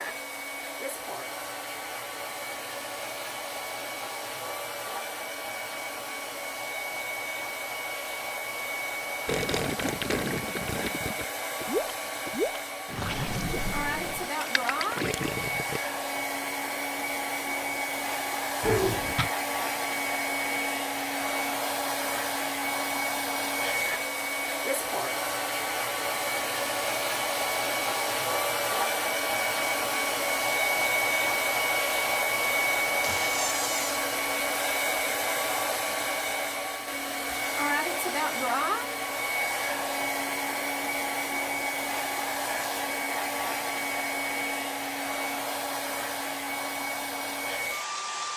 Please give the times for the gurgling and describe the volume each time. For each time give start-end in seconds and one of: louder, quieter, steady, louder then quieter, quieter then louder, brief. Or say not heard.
9.2-15.8 steady.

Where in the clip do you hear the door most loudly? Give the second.
19 s.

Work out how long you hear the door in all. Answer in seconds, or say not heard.
2 s.